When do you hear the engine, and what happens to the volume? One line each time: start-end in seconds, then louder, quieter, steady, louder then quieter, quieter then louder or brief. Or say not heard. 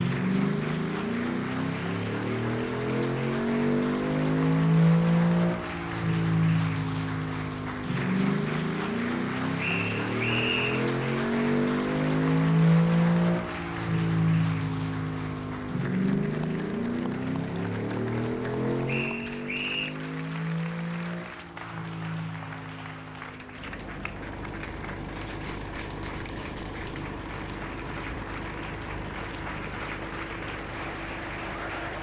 0.0-31.9 quieter.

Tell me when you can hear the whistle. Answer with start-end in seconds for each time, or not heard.
9.6-10.8, 18.9-19.9.